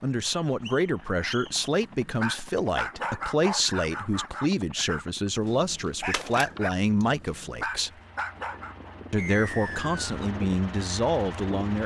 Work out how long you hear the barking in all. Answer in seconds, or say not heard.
8 s.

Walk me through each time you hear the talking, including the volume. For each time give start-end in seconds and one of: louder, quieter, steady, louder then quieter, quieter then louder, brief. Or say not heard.
0.0-7.9 steady
9.1-11.8 brief.